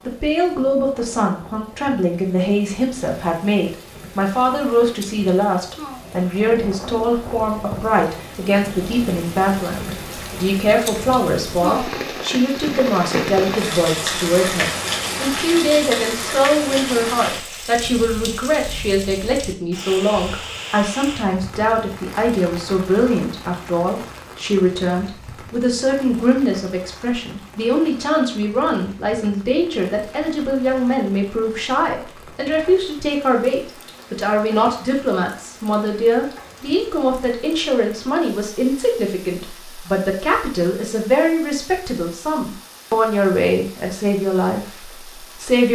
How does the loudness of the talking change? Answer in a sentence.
The loudness of the talking stays about the same.